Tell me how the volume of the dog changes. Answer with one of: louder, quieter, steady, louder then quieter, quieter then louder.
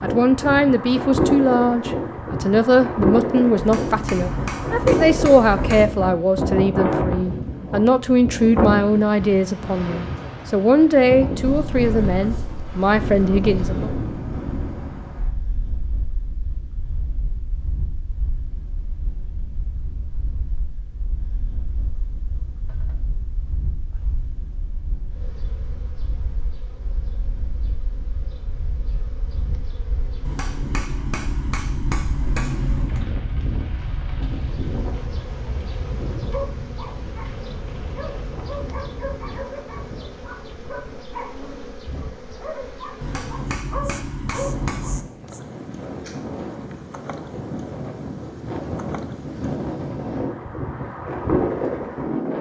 louder.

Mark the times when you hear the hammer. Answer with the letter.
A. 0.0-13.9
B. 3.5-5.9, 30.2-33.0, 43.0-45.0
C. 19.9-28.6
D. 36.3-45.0
B.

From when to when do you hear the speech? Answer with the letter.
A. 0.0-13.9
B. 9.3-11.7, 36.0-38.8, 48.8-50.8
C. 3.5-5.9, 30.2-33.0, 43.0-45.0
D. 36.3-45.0
A.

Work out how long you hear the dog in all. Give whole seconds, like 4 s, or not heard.
9 s.